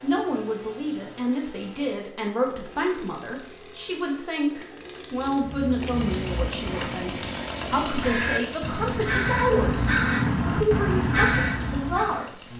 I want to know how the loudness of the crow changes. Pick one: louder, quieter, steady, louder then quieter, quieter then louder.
louder.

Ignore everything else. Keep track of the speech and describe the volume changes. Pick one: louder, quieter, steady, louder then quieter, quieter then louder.
steady.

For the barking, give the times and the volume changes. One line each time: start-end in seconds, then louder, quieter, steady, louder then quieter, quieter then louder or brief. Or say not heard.
not heard.